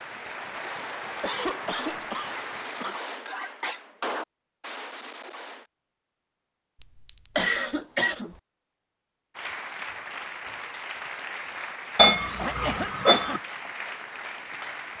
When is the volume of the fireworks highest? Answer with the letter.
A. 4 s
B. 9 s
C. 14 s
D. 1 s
A.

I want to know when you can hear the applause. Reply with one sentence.
The applause can be heard from 0.0 to 3.0 s and from 9.3 to 14.9 s.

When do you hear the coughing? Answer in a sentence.
You can hear the coughing from 1.2 to 3.1 s, from 7.3 to 8.3 s and from 12.3 to 13.4 s.